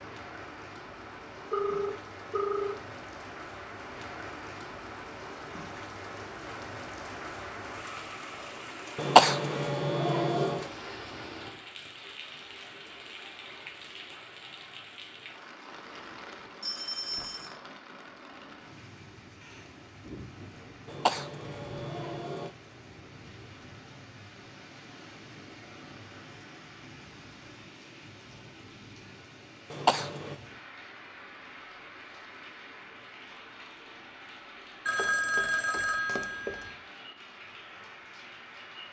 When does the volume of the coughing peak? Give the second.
9 s.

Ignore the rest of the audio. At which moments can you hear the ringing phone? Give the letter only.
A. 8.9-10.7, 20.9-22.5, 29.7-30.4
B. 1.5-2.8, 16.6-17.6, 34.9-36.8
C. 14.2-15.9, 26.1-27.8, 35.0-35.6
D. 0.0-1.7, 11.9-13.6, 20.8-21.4
B.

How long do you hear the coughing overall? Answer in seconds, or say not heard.
4 s.